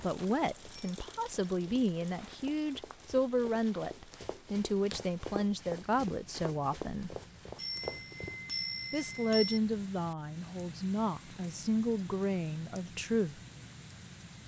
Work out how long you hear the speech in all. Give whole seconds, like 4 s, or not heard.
12 s.